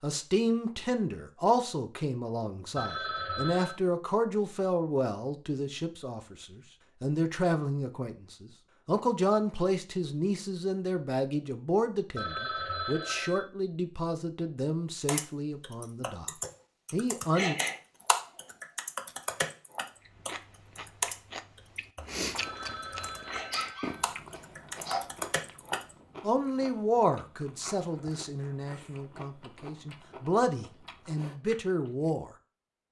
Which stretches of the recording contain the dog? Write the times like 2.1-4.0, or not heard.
23.5-25.0.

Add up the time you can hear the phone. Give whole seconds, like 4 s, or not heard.
4 s.